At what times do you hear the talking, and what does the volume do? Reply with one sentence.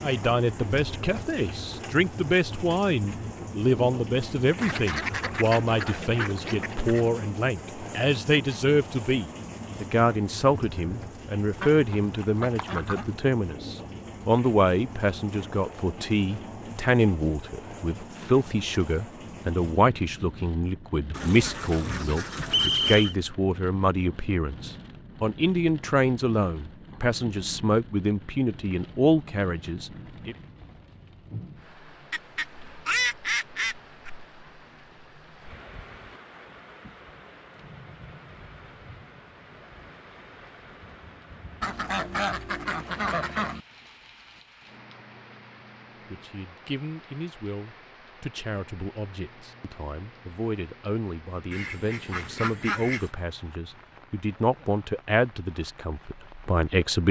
The talking can be heard from 0.0 to 30.4 s, at a steady volume; and from 46.0 to 57.0 s, getting louder.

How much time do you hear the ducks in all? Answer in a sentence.
You can hear the ducks for 12 seconds altogether.